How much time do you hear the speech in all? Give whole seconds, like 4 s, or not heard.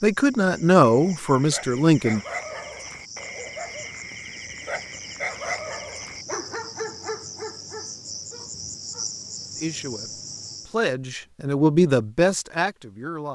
6 s.